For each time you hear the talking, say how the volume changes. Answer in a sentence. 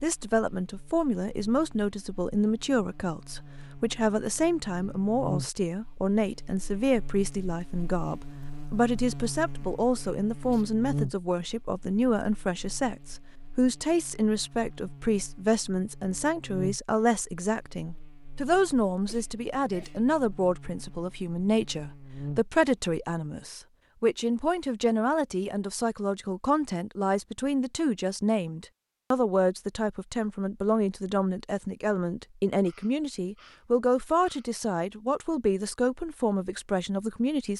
You can hear the talking from 0.0 to 37.5 s, at a steady volume.